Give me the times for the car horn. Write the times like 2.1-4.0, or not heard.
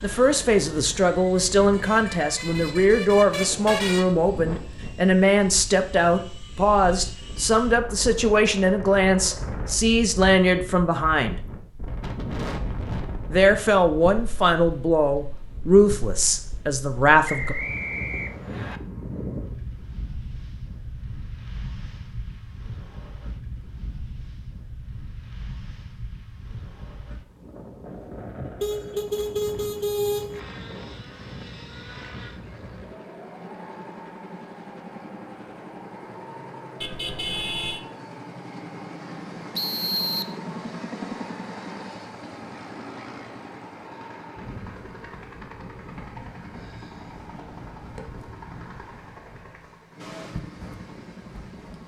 1.6-4.2, 28.6-30.4, 36.8-37.8.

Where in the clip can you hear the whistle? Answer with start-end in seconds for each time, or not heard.
17.2-18.8, 39.5-40.4.